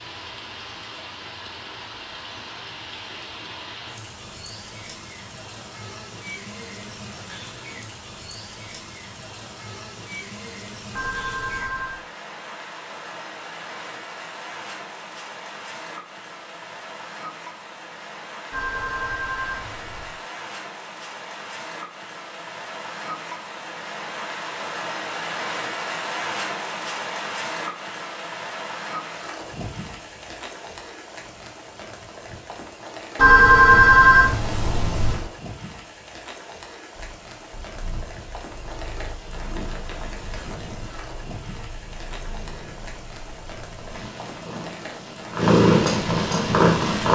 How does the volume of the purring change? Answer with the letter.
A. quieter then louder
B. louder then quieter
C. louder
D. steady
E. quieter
C.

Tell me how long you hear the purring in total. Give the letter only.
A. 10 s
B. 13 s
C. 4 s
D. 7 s
A.